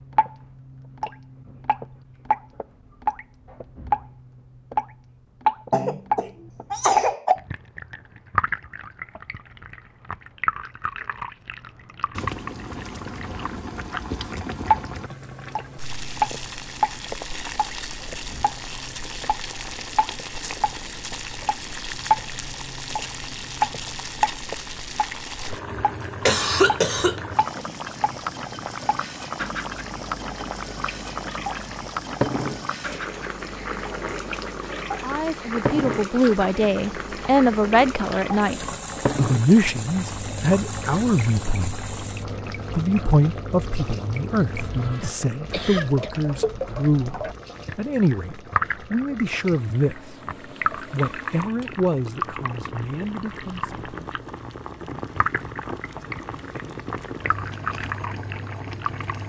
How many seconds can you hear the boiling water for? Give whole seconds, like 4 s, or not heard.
47 s.